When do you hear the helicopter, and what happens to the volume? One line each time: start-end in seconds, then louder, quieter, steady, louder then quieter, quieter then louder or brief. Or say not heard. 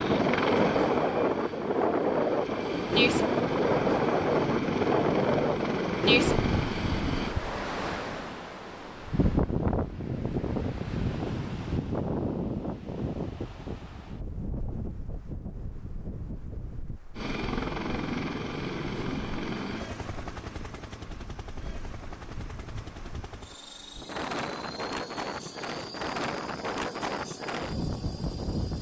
0.0-7.3 quieter then louder
17.1-28.7 quieter.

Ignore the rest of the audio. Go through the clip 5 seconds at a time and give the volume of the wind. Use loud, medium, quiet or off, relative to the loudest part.
loud, loud, medium, quiet, quiet, medium.